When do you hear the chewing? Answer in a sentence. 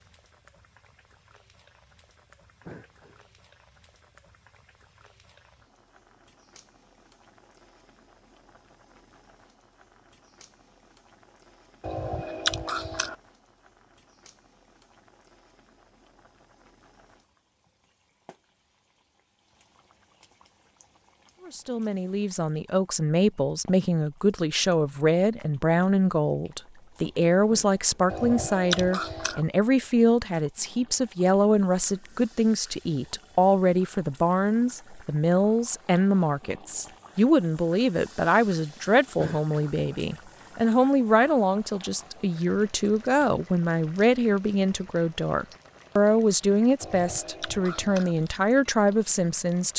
You can hear the chewing from 11.8 to 13.2 s, from 28.1 to 29.4 s and from 46.8 to 48.1 s.